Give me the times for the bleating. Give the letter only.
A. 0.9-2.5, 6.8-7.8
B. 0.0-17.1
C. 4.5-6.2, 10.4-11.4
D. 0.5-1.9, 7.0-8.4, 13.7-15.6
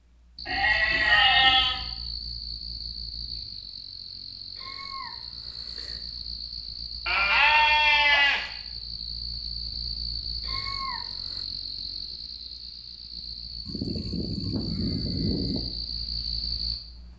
D.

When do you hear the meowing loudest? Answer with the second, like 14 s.
11 s.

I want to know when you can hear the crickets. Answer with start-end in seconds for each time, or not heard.
0.0-17.1.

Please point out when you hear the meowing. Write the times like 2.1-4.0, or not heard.
4.5-6.2, 10.4-11.4.